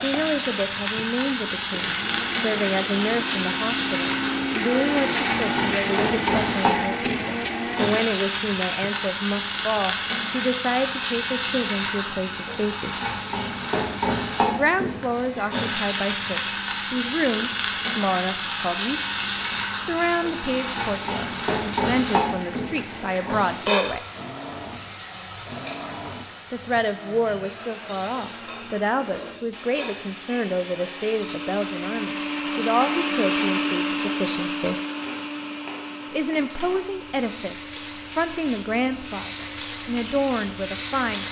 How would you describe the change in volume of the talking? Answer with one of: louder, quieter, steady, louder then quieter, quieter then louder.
steady.